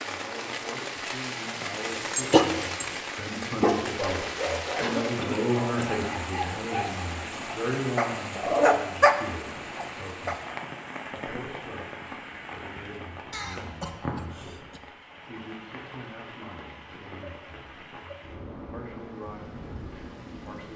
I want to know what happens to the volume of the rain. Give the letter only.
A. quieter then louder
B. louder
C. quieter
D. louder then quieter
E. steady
C.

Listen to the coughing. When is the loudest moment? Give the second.
5 s.